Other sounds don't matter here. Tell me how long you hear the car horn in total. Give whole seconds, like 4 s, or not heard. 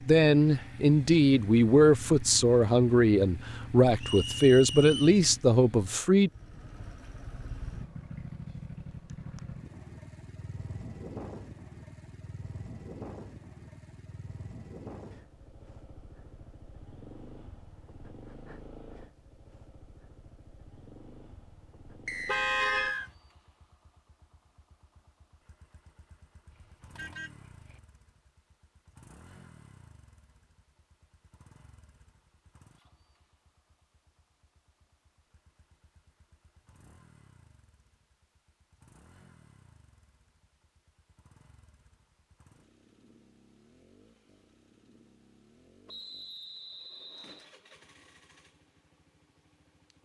2 s.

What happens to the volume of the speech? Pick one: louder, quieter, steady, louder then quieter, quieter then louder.
steady.